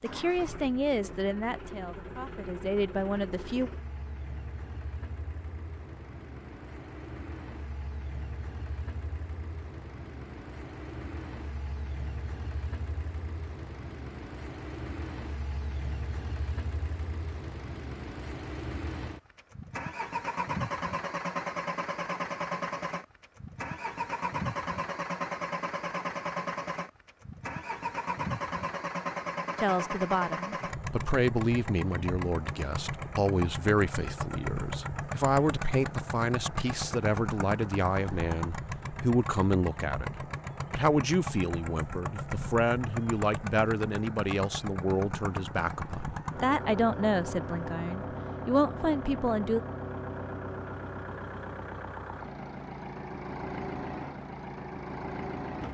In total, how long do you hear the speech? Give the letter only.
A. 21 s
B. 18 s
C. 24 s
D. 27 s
C.